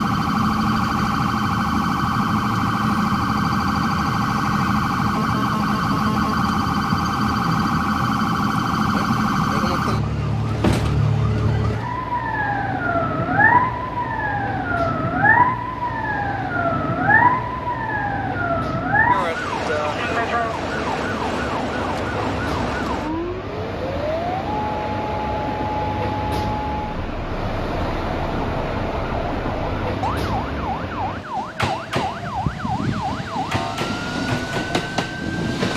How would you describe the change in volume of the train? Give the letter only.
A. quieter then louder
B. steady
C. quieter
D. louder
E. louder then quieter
D.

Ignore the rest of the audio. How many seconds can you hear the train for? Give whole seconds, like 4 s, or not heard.
36 s.